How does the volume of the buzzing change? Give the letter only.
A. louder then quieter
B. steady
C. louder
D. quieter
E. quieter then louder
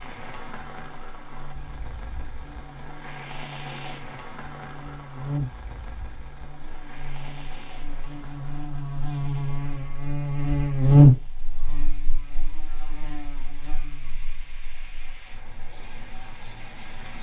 A.